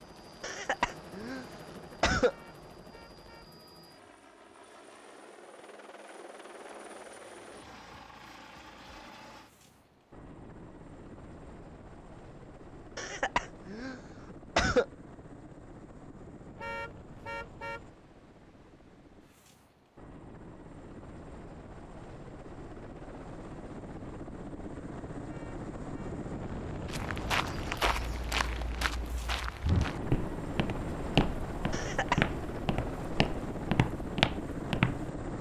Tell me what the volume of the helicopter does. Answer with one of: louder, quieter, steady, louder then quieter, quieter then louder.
louder.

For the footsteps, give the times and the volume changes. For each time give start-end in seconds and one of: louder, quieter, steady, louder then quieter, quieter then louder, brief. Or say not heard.
26.9-35.1 steady.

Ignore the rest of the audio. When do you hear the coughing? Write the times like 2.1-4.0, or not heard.
0.4-2.4, 12.9-14.8, 31.7-32.2.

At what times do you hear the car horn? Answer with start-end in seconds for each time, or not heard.
2.2-3.5, 16.6-17.9, 25.2-26.2.